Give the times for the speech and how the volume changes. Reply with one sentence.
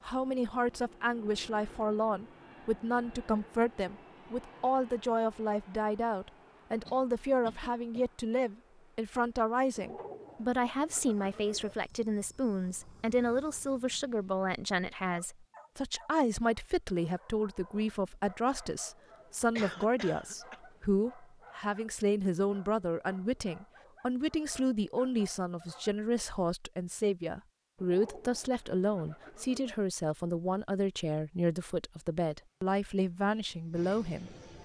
You can hear the speech from 0.0 to 34.4 s, at a steady volume.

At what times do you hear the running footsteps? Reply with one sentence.
The running footsteps can't be heard in this clip.